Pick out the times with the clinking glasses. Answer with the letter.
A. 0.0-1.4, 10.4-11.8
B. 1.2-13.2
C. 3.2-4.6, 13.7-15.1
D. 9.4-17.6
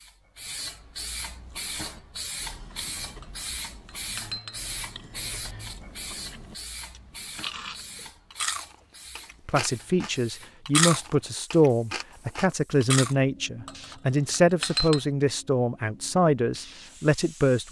C.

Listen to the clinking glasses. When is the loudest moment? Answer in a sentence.
The loudest moment of the clinking glasses is at 15 seconds.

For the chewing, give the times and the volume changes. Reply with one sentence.
You can hear the chewing from 1.2 to 13.2 s, getting louder.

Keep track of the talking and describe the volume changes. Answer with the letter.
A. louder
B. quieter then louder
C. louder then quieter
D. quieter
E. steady
E.